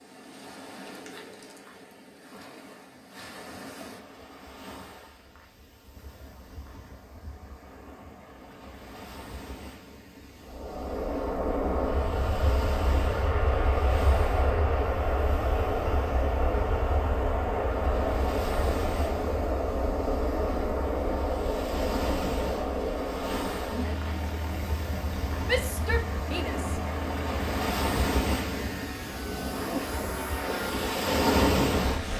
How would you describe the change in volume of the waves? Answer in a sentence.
The loudness of the waves goes up.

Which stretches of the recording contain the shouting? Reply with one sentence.
You can hear the shouting from 25.4 to 26.8 s.